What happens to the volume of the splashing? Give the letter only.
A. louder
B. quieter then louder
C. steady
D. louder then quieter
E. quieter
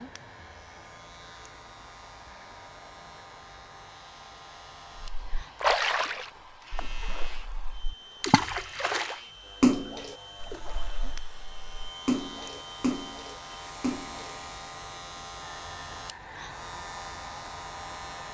D.